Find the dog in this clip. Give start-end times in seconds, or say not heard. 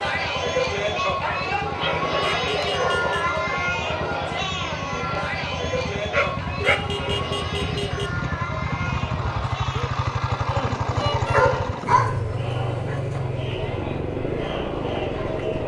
1.2-3.1, 6.1-6.8, 11.2-13.2.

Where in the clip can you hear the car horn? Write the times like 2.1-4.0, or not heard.
2.1-3.4, 6.6-8.1, 11.0-11.4.